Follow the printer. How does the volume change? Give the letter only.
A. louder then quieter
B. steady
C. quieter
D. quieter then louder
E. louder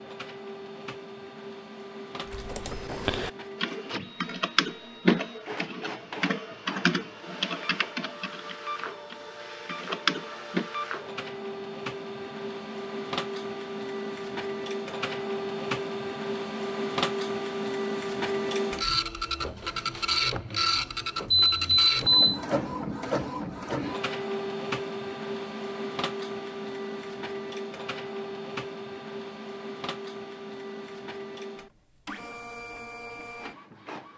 A.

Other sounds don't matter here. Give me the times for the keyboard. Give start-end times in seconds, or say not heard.
2.3-10.7.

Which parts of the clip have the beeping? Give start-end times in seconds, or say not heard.
21.3-22.4.